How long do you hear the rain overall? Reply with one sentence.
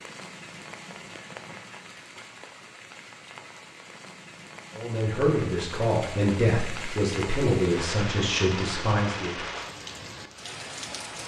You can hear the rain for 11 seconds altogether.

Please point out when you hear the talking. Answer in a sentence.
You can hear the talking from 4.8 to 9.4 s.